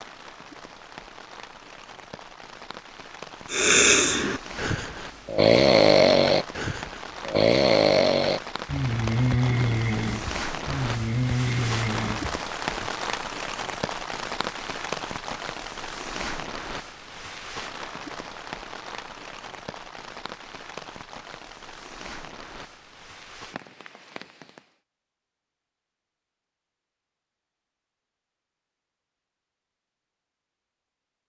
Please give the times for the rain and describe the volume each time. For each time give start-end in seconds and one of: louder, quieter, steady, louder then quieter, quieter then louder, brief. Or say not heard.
0.0-24.8 louder then quieter.